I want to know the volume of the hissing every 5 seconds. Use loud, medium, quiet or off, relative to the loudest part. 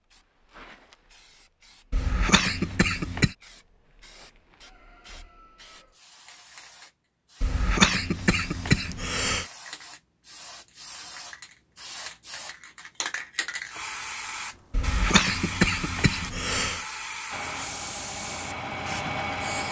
quiet, medium, loud, loud.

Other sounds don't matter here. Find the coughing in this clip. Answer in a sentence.
The coughing can be heard from 1.9 to 3.4 s, from 7.4 to 9.4 s and from 14.7 to 16.8 s.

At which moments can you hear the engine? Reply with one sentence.
The engine can be heard from 17.3 to 19.6 s.